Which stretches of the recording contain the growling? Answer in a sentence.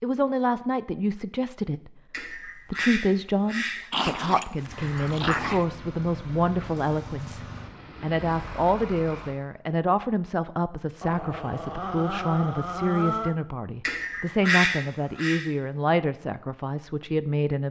You can hear the growling from 3.9 to 5.7 s and from 11.0 to 13.3 s.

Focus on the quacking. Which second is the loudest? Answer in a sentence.
The loudest moment of the quacking is at 15 seconds.